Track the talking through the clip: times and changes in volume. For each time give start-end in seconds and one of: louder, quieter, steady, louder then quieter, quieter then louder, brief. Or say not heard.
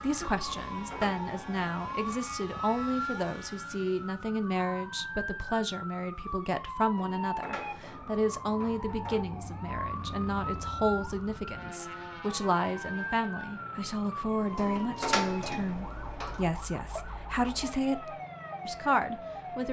0.0-19.6 steady.